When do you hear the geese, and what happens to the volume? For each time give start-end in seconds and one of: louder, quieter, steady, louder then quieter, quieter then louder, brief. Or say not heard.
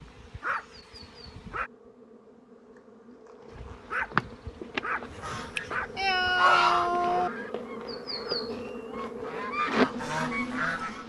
5.2-11.0 quieter then louder.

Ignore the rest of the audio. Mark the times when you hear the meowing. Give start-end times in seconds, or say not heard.
5.3-7.3.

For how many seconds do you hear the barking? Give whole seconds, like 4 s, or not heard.
5 s.